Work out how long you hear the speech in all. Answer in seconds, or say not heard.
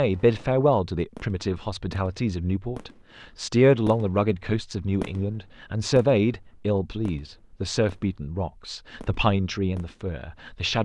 11 s.